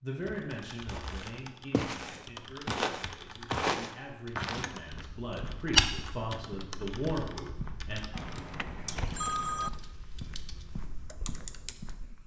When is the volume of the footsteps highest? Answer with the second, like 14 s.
6 s.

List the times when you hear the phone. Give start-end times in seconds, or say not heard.
8.1-9.7.